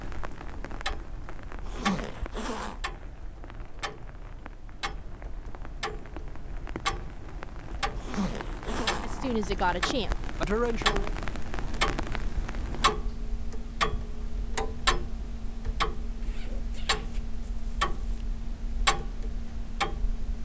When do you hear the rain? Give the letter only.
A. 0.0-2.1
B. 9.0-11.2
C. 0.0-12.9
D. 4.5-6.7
C.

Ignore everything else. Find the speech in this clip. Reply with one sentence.
The speech can be heard from 9.0 to 11.2 s.